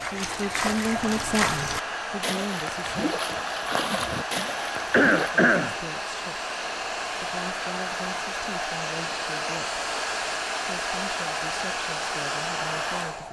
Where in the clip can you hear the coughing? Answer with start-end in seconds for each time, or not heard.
4.9-5.8.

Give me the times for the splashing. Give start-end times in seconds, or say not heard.
0.0-5.3.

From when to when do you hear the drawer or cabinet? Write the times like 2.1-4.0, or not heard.
not heard.